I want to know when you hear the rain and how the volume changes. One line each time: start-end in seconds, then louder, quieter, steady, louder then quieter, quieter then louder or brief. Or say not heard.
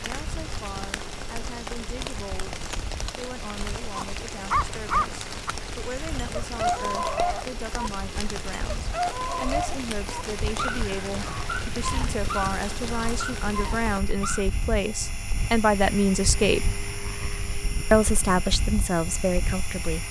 0.0-14.0 steady.